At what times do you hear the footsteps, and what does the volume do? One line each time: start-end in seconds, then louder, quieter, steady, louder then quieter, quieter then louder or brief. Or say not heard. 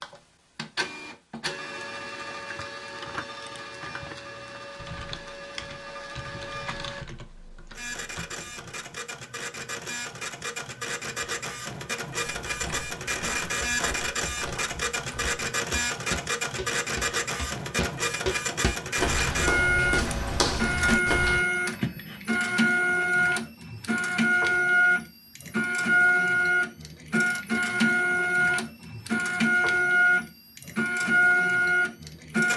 12.4-21.4 louder.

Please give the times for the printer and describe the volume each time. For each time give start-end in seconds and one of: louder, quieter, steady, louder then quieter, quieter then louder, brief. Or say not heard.
0.0-32.5 louder.